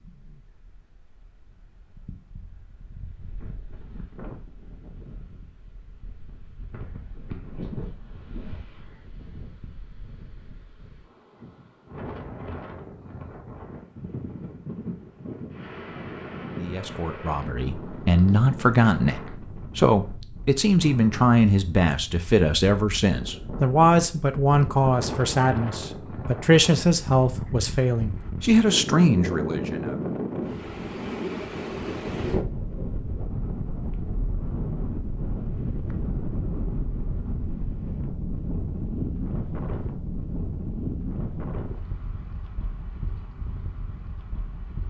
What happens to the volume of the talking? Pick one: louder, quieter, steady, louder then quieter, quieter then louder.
steady.